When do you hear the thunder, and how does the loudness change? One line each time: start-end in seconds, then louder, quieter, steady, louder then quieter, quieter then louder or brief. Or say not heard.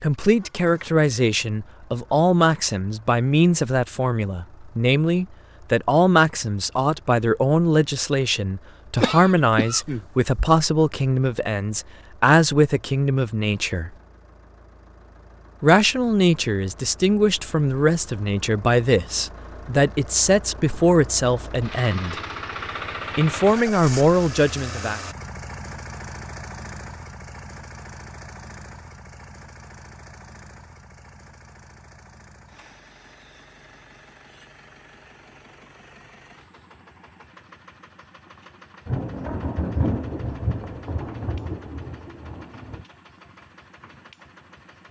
38.9-42.9 quieter.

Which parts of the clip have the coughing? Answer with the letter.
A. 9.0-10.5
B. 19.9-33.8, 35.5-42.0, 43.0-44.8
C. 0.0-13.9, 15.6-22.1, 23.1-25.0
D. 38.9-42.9
A.